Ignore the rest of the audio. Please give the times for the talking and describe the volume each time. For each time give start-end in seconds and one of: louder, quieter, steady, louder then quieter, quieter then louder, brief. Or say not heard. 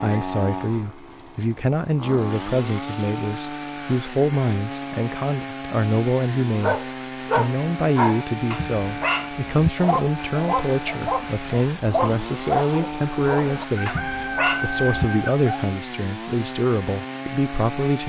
0.0-18.0 steady.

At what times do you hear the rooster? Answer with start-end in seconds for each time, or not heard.
13.8-15.3.